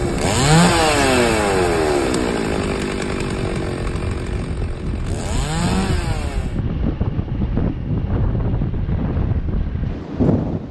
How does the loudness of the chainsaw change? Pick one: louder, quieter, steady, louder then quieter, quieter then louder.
quieter then louder.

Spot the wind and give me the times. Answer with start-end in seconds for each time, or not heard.
0.0-10.6.